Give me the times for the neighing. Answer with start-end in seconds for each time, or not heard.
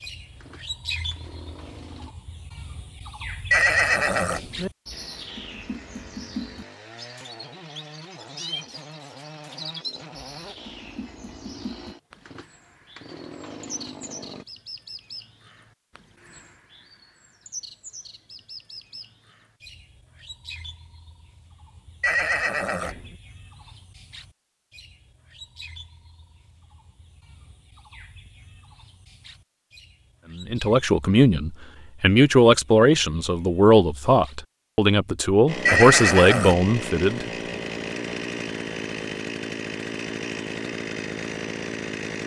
3.5-4.7, 22.0-23.1, 35.6-36.6.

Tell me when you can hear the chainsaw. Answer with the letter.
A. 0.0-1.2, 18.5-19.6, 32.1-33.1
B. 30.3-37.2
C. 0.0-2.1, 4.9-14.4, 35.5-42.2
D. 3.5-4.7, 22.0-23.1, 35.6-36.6
C.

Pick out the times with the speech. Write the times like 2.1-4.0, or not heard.
30.3-37.2.